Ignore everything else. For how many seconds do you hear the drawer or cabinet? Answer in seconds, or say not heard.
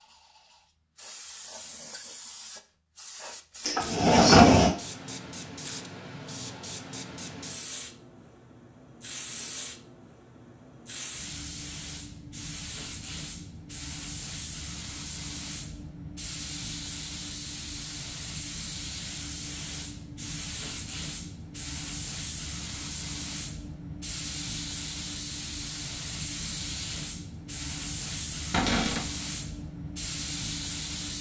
2 s.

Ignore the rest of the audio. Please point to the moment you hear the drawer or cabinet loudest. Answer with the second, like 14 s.
4 s.